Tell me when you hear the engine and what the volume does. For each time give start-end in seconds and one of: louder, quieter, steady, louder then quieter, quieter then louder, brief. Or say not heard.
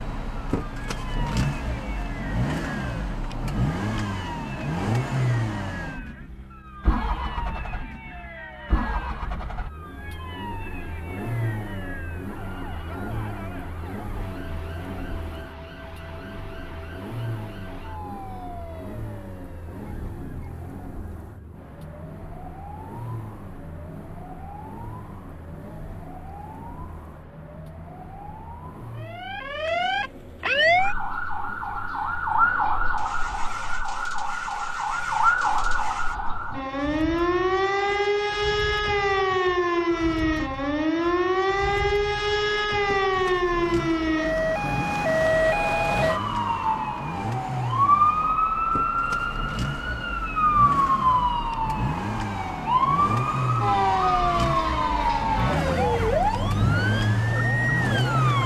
0.0-58.4 quieter then louder.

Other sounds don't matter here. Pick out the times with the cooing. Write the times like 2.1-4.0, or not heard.
not heard.